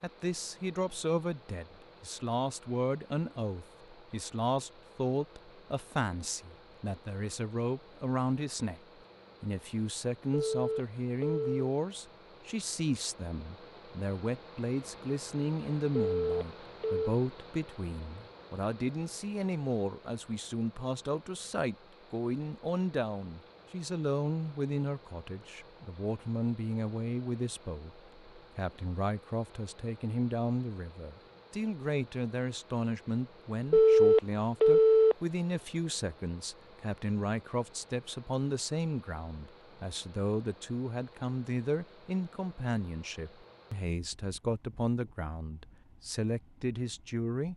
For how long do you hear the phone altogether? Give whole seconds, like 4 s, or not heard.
4 s.